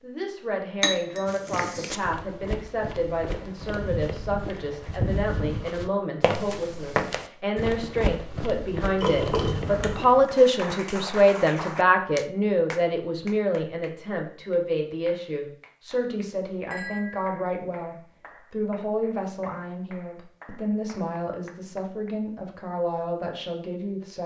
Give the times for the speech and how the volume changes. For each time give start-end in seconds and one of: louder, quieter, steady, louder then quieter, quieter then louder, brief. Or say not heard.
0.0-24.2 louder then quieter.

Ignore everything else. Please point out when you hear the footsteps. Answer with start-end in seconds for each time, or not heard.
1.2-10.2.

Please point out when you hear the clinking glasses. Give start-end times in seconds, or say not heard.
0.8-2.0, 9.0-10.1, 16.7-17.4.